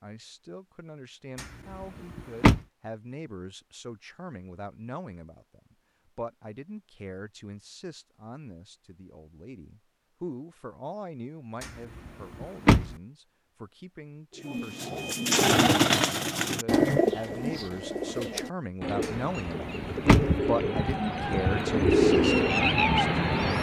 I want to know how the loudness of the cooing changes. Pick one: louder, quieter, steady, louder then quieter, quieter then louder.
quieter then louder.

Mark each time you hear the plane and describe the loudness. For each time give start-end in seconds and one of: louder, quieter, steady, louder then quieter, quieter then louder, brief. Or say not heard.
not heard.